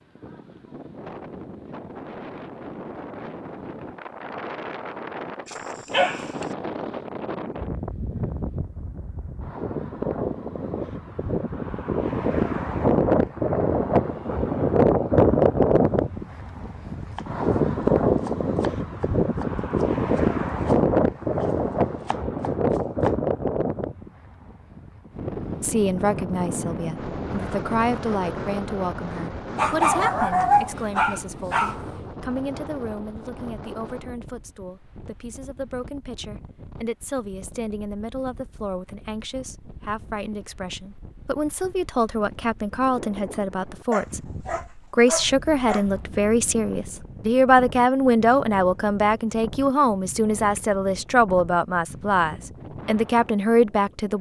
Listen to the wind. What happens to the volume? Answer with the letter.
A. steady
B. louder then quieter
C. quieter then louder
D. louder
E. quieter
B.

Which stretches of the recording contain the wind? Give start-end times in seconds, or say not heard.
0.0-54.1.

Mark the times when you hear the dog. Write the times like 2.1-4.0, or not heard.
5.5-6.5, 29.6-31.8, 43.9-45.9.